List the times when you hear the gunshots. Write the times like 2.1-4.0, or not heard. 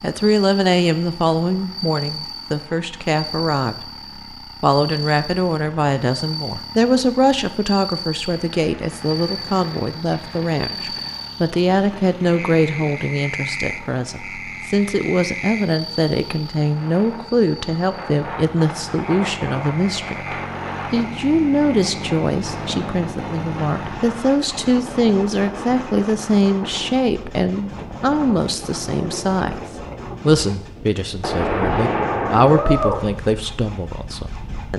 8.2-13.0, 31.2-33.0.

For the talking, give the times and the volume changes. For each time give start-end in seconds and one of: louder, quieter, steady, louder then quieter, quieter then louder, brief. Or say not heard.
0.0-34.7 steady.